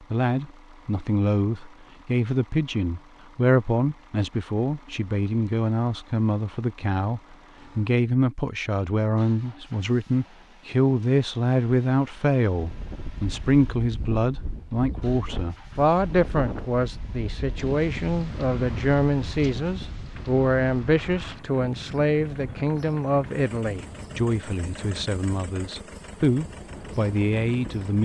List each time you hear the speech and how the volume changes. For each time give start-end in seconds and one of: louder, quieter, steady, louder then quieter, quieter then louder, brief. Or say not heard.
0.1-27.9 steady.